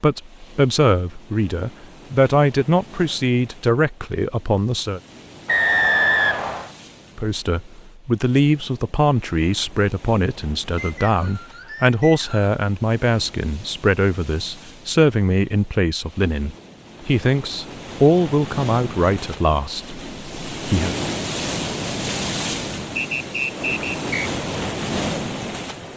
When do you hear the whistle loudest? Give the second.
6 s.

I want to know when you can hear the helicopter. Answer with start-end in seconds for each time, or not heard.
not heard.